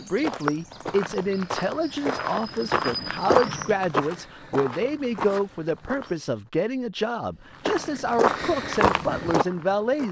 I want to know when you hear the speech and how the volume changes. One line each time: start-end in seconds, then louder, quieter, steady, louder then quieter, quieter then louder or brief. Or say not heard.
0.0-10.0 steady.